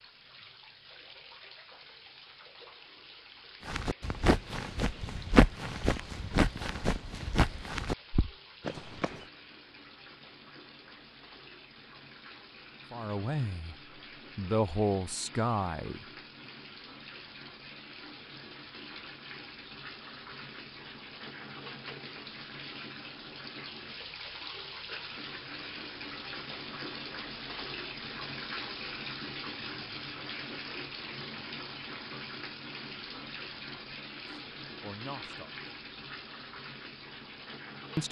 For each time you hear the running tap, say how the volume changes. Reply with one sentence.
You can hear the running tap from 0.0 to 38.0 s, getting louder.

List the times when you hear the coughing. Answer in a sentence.
You can't hear the coughing here.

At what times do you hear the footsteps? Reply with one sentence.
You can hear the footsteps from 3.6 to 9.2 s.